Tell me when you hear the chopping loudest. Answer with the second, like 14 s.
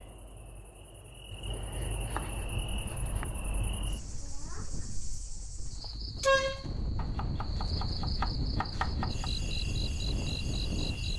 9 s.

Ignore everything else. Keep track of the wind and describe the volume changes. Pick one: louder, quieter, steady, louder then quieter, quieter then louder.
louder.